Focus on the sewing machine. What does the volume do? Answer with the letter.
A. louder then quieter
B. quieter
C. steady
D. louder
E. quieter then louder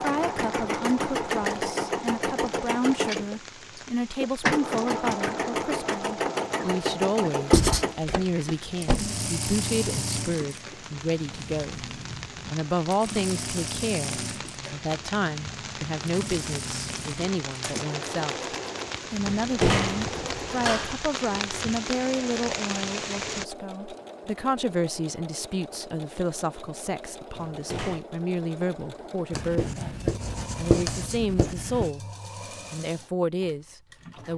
B.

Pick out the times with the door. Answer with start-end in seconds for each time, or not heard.
8.0-9.2, 19.2-21.0, 27.4-28.0.